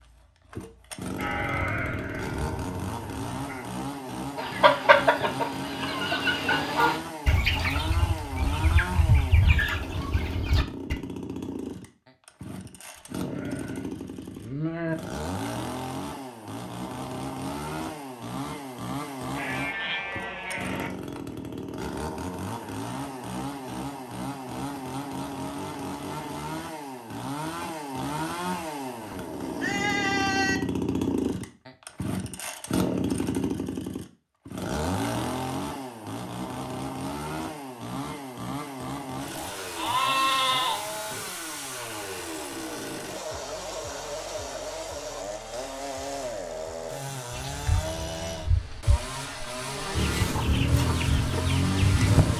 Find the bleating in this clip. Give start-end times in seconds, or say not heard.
1.1-3.6, 12.9-14.9, 19.3-20.9, 28.6-30.6, 39.8-41.3, 47.3-49.1.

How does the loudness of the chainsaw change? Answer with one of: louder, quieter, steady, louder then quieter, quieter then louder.
steady.